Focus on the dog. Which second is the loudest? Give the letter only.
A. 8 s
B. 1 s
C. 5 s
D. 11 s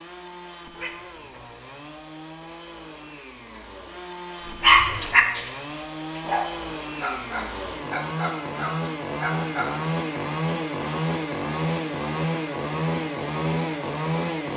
C.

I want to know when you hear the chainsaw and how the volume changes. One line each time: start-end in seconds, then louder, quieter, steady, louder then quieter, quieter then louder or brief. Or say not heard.
0.0-14.5 louder.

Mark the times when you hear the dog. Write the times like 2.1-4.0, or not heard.
4.6-9.8.